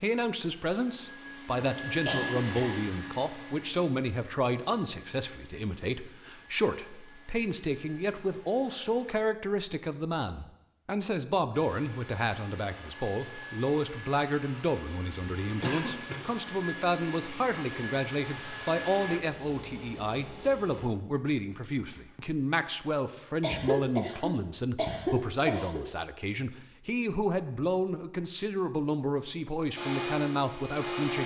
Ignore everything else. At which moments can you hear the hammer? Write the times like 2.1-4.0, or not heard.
not heard.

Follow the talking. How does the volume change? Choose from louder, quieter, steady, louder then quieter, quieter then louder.
steady.